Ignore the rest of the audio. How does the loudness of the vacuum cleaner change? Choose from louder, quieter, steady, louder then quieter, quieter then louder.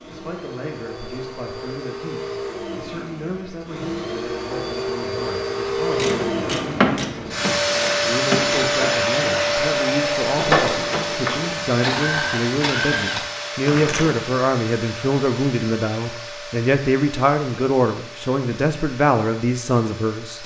louder then quieter.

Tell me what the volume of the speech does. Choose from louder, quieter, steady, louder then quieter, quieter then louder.
louder.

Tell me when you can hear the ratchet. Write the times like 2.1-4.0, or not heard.
5.9-14.2.